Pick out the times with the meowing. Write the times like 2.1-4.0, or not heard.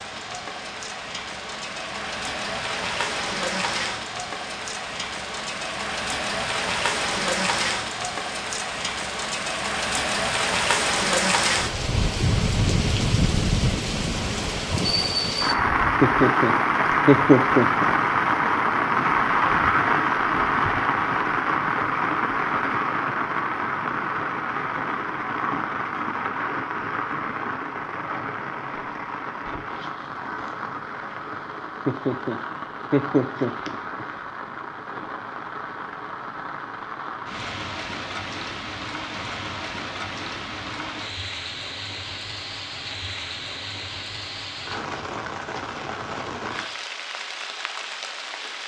not heard.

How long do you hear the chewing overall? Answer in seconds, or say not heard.
not heard.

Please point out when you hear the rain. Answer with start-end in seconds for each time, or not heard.
0.0-48.6.